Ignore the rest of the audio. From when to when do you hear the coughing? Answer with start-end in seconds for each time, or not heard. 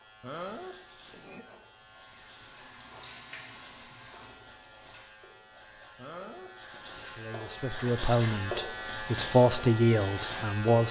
0.2-1.4, 6.0-7.2.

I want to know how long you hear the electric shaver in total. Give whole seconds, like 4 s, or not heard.
11 s.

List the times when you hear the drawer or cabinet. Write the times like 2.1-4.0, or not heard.
not heard.